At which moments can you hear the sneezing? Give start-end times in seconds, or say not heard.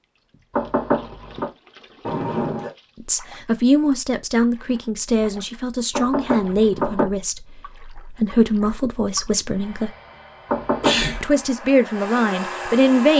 2.0-2.7, 10.8-11.2.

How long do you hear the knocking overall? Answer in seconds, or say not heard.
3 s.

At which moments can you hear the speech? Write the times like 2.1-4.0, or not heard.
3.0-9.9, 11.2-13.1.